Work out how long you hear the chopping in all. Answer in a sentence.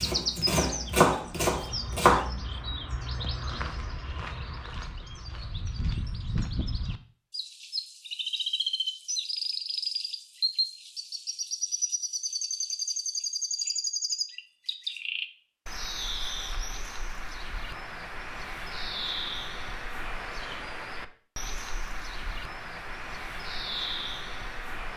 The chopping can be heard for 2 seconds in total.